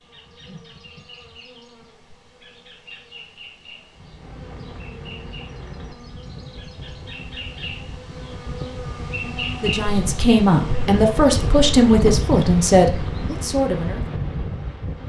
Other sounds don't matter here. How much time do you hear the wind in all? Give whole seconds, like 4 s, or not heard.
11 s.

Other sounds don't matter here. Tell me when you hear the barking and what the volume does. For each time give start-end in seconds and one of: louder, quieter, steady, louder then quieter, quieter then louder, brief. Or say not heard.
not heard.